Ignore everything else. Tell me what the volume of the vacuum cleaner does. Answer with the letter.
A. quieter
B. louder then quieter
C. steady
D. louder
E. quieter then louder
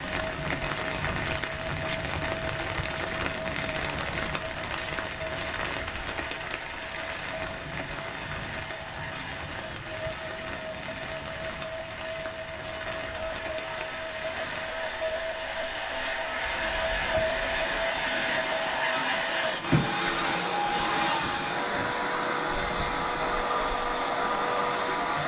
D.